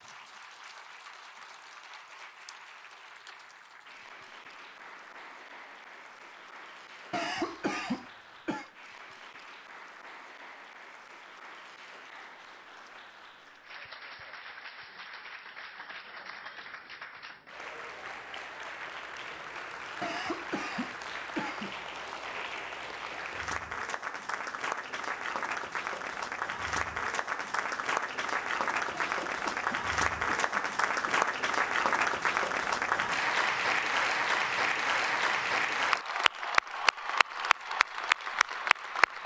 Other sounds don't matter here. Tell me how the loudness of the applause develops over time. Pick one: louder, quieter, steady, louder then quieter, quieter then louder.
louder.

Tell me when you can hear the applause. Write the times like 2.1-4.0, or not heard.
0.0-39.2.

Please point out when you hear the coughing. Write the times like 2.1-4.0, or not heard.
7.1-8.7, 20.0-21.8, 28.9-31.2.